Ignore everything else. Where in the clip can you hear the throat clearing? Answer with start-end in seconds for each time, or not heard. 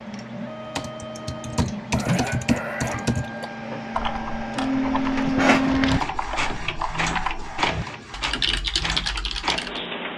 1.9-3.2, 7.7-8.6.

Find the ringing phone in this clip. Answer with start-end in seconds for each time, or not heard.
not heard.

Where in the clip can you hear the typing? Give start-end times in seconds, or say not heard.
0.8-9.8.